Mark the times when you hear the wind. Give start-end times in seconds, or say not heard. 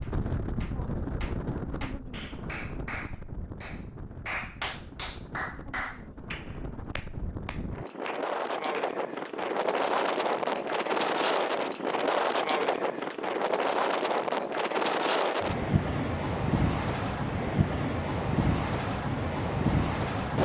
0.0-20.4.